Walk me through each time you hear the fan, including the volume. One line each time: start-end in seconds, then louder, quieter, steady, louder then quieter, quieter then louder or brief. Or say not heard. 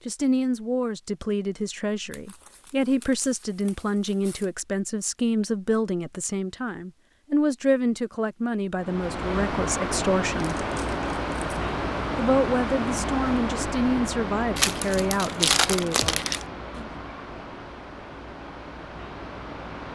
8.8-19.8 quieter.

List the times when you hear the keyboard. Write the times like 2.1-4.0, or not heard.
not heard.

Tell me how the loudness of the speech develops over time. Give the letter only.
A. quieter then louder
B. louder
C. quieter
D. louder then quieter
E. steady
E.